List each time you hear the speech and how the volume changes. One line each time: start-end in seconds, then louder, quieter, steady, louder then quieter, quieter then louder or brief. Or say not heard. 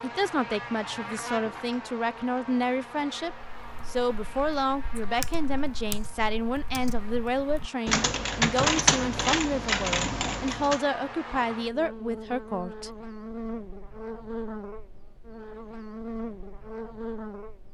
0.0-12.9 steady.